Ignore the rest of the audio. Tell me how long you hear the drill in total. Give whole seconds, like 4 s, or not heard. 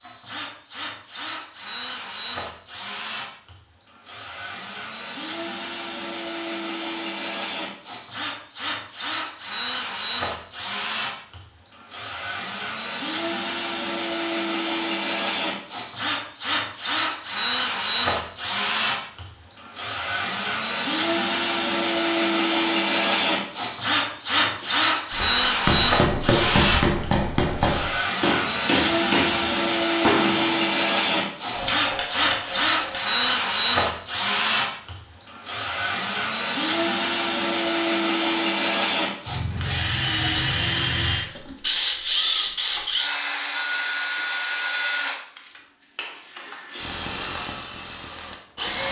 49 s.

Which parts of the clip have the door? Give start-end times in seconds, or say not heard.
not heard.